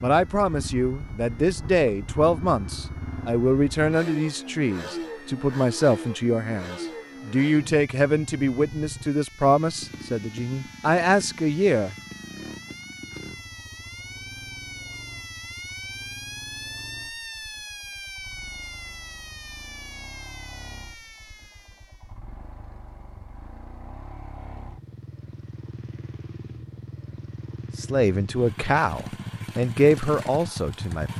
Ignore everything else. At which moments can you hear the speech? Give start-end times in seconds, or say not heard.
0.0-11.9, 27.8-31.1.